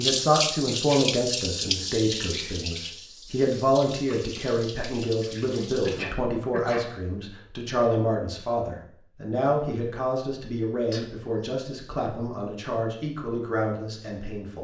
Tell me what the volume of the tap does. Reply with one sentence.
The loudness of the tap goes down.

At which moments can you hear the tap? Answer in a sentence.
You can hear the tap from 0.0 to 6.2 s.